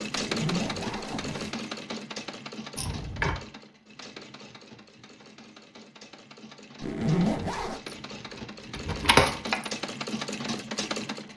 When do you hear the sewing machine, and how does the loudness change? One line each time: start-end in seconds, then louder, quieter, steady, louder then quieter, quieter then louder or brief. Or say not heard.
0.0-11.3 quieter then louder.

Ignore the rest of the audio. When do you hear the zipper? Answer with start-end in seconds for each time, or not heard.
0.1-1.6, 6.8-7.8.